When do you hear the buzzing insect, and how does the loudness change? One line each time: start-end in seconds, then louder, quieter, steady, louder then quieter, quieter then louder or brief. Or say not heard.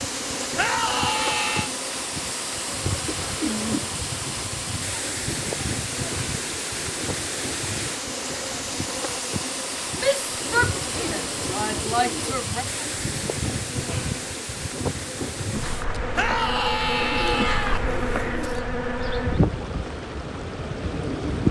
0.0-21.4 louder.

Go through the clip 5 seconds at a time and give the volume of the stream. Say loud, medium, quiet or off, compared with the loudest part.
loud, loud, loud, medium, medium.